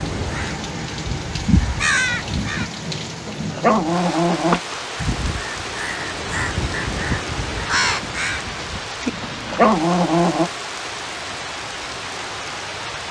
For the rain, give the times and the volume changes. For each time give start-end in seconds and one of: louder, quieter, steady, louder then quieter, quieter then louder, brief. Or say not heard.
0.0-13.0 steady.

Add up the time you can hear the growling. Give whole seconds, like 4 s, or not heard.
3 s.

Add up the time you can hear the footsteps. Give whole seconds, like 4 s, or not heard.
not heard.